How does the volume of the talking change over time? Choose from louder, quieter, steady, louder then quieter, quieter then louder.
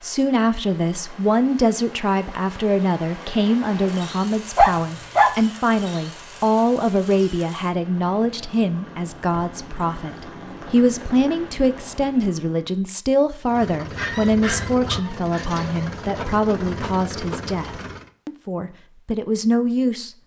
steady.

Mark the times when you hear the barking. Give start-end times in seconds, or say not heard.
4.5-5.3, 13.9-15.6.